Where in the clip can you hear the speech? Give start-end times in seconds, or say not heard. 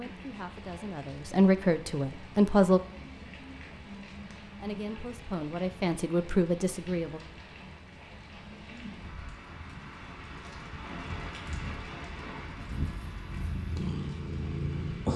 0.0-2.8, 4.5-7.2.